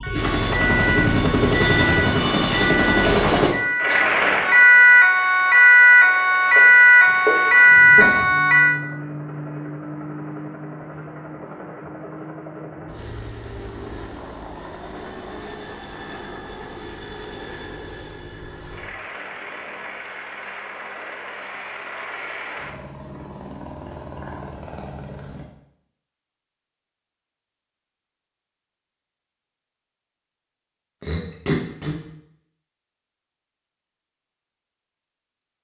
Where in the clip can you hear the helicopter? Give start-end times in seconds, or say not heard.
0.0-25.4.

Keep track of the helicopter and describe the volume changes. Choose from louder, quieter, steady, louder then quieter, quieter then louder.
quieter.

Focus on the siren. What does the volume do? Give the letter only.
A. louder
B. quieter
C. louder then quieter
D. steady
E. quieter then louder
A.